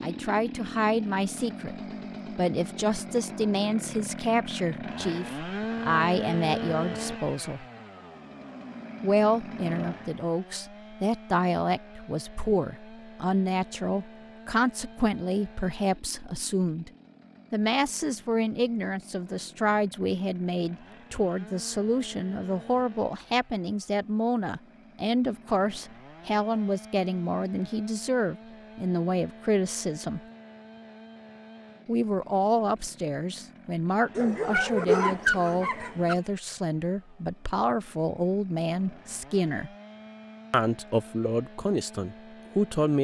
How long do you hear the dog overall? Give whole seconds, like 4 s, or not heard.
2 s.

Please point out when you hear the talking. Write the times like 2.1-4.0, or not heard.
0.0-7.7, 9.0-16.9, 17.5-30.2, 31.9-39.7, 40.5-43.0.